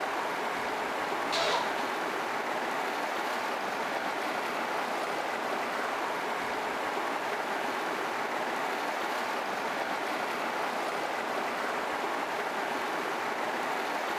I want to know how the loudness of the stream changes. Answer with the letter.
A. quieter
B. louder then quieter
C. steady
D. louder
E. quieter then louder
C.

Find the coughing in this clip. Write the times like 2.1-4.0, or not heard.
1.1-1.9.